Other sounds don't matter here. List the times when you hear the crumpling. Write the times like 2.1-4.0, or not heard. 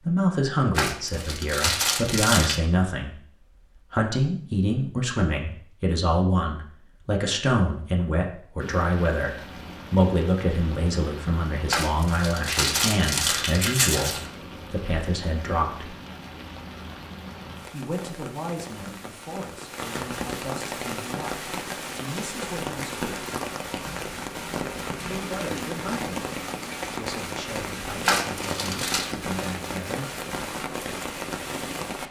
0.8-2.6, 11.7-14.3, 28.0-29.1.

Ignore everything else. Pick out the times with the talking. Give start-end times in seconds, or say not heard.
0.0-15.9, 17.7-23.2, 25.1-26.3, 26.9-30.1.